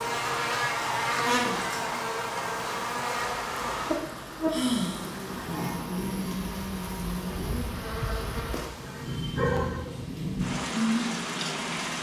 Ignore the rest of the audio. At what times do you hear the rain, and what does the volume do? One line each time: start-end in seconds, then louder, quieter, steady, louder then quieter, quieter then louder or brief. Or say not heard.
0.0-11.9 louder.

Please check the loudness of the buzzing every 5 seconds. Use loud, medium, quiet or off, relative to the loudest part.
loud, medium, off.